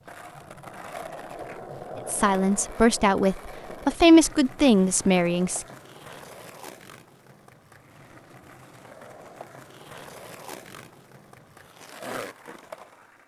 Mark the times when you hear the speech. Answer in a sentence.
The speech can be heard from 2.0 to 5.7 s.